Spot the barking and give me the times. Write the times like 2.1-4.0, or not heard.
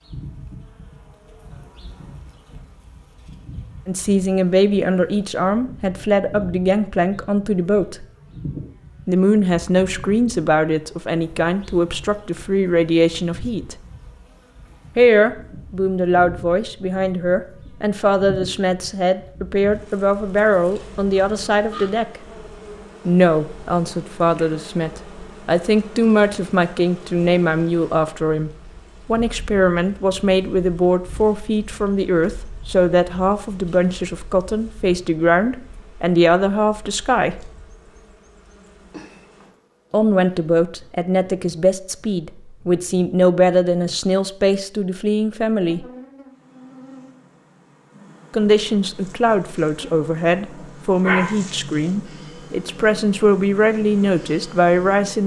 50.4-51.8.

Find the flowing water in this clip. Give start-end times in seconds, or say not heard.
not heard.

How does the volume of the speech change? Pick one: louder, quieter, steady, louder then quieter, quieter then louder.
steady.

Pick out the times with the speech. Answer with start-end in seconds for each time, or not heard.
3.9-8.1, 9.1-13.8, 14.9-22.2, 23.1-37.5, 39.9-45.9, 48.3-55.2.